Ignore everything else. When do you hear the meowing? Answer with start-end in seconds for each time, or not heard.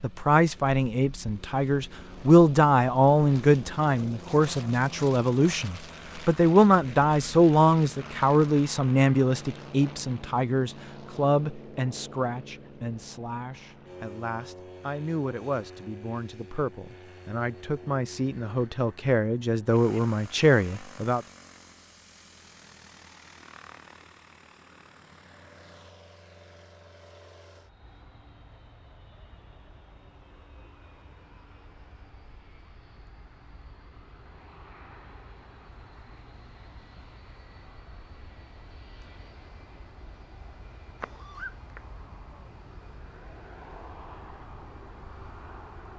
41.0-41.9.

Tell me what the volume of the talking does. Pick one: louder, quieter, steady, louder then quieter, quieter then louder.
quieter then louder.